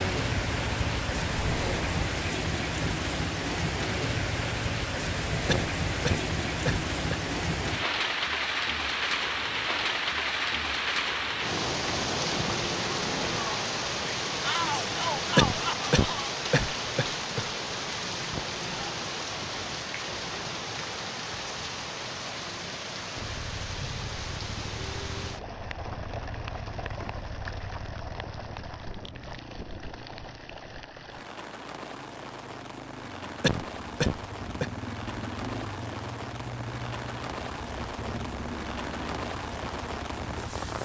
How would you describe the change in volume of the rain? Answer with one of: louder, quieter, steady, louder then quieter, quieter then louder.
quieter.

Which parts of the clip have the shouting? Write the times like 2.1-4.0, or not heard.
14.4-16.4.